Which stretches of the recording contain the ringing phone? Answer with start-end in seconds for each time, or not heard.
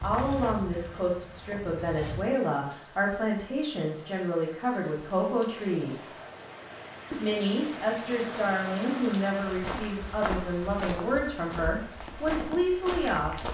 not heard.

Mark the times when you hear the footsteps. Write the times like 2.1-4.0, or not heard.
0.0-2.2, 9.4-13.4.